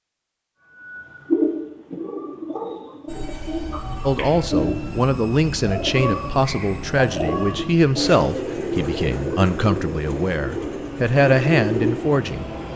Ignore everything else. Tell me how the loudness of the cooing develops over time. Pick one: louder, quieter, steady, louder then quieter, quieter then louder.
steady.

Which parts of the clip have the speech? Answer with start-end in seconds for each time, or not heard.
4.0-12.7.